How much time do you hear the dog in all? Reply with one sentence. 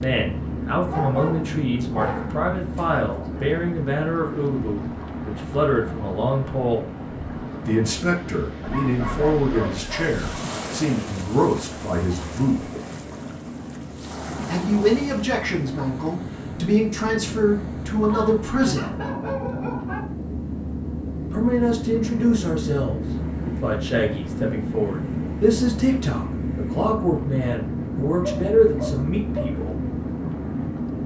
The dog can be heard for 7 seconds in total.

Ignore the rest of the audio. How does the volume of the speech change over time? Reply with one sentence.
The volume of the speech stays about the same.